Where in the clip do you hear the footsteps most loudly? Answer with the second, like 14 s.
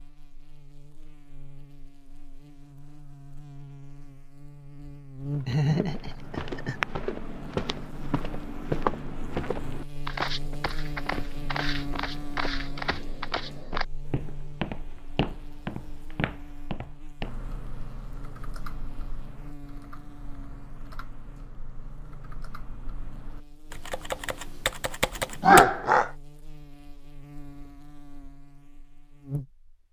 9 s.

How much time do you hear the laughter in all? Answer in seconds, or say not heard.
2 s.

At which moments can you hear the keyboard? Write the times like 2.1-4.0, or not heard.
17.2-25.6.